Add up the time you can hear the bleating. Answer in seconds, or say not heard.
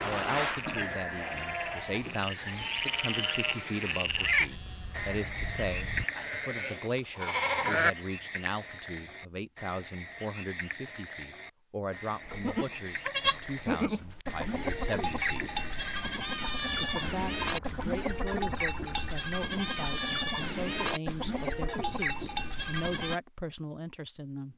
19 s.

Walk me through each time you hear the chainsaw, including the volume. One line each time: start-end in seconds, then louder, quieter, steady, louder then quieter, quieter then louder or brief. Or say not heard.
not heard.